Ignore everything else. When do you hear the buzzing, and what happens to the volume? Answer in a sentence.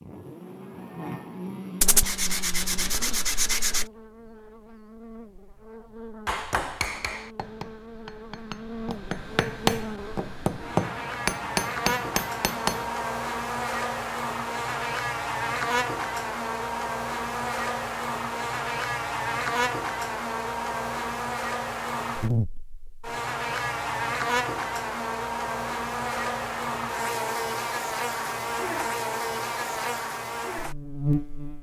The buzzing can be heard from 0.0 to 31.5 s, getting louder.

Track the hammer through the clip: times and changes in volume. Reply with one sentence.
The hammer can be heard from 6.2 to 12.9 s, getting quieter then louder.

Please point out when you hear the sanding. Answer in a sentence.
The sanding can be heard from 1.8 to 3.9 s.